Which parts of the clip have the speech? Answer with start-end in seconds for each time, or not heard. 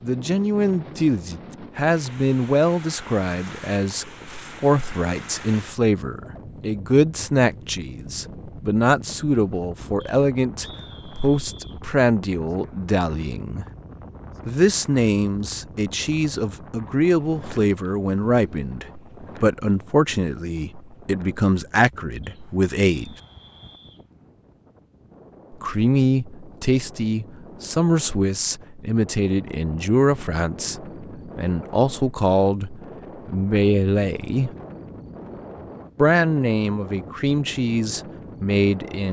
0.0-13.7, 14.4-23.1, 25.5-34.5, 36.0-39.0.